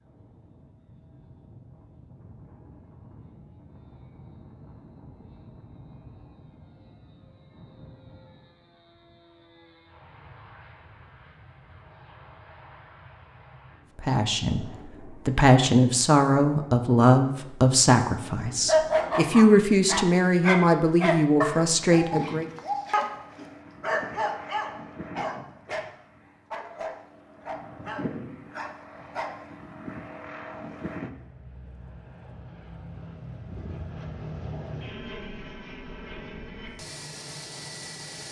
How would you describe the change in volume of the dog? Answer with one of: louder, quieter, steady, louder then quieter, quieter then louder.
quieter.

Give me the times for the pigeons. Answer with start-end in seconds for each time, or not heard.
not heard.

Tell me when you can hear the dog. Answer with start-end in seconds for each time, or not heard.
18.6-25.9, 26.5-29.6.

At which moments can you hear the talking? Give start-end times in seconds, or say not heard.
13.9-22.4.